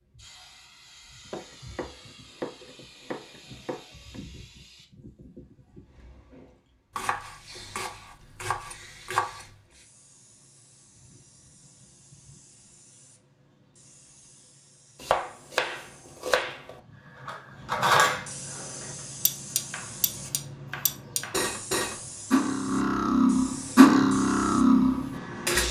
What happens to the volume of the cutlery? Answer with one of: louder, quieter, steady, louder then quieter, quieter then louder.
quieter then louder.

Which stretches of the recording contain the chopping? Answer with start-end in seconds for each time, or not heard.
1.3-4.2, 7.0-9.4, 15.0-16.8, 19.5-21.5.